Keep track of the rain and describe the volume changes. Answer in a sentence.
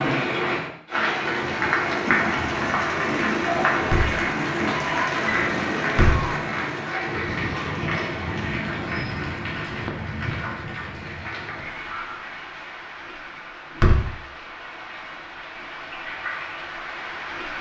The volume of the rain goes down.